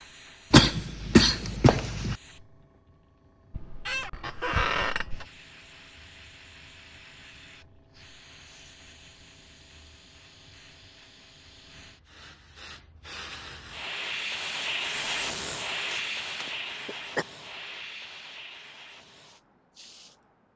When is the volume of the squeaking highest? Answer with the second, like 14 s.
5 s.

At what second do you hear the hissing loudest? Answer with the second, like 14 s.
15 s.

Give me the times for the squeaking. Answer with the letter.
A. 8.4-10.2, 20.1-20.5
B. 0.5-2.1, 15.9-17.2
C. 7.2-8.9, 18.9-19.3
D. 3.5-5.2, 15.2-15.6
D.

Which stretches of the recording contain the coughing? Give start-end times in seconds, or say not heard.
0.5-2.1, 15.9-17.2.